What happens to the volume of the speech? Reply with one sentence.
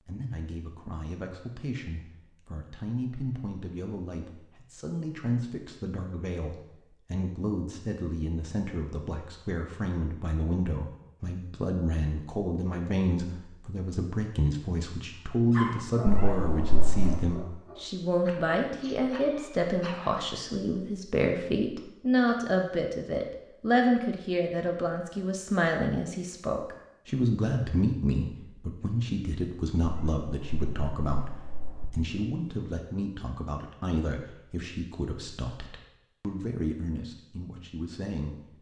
The volume of the speech goes up, then down.